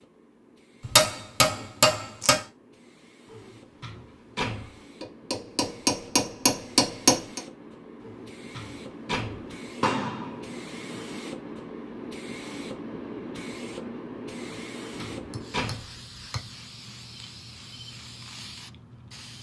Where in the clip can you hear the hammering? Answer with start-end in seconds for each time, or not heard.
0.8-2.4, 5.0-7.4, 9.8-11.1, 15.2-16.5.